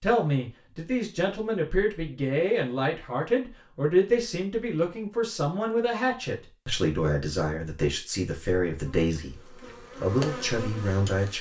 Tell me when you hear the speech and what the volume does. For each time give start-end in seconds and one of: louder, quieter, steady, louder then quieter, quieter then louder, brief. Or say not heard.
0.0-11.3 steady.